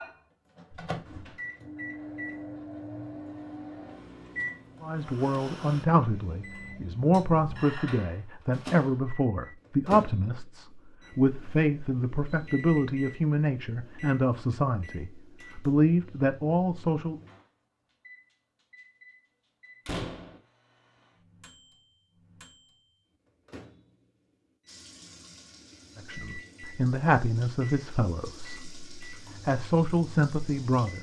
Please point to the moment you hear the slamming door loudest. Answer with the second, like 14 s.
20 s.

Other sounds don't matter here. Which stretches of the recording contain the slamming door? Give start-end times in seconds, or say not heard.
0.8-1.4, 19.9-20.4.